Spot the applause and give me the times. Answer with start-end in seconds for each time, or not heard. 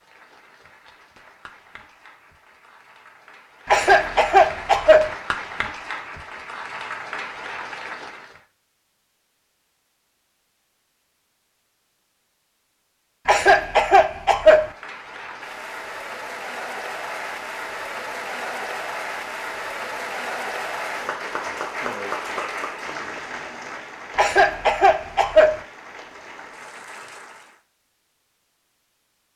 0.0-8.4, 14.5-27.6.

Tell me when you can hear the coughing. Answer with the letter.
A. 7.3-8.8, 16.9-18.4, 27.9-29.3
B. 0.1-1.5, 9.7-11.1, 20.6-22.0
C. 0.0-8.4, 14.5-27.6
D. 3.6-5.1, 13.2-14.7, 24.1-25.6
D.